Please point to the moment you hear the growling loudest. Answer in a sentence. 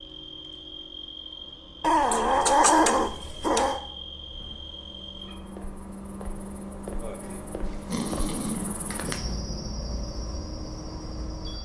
The loudest moment of the growling is at 3 seconds.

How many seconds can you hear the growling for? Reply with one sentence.
The growling can be heard for 4 seconds in total.